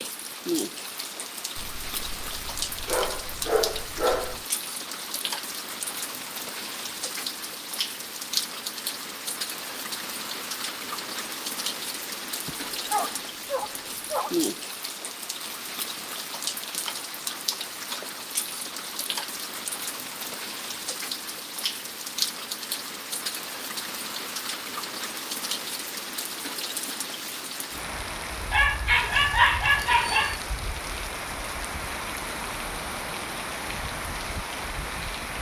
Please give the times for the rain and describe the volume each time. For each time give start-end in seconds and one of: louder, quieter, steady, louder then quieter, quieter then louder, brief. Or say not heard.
0.0-35.3 steady.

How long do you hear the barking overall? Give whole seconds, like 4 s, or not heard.
7 s.